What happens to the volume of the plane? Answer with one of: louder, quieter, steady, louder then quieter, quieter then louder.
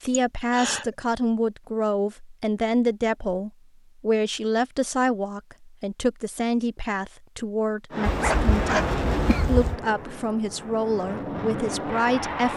quieter then louder.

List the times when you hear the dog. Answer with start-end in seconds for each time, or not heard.
8.1-9.8.